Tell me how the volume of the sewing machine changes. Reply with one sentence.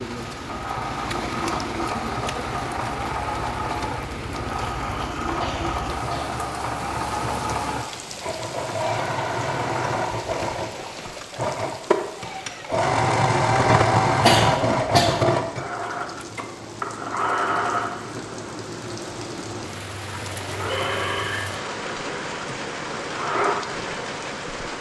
The loudness of the sewing machine goes up, then down.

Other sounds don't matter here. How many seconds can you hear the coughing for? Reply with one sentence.
You can hear the coughing for 2 seconds altogether.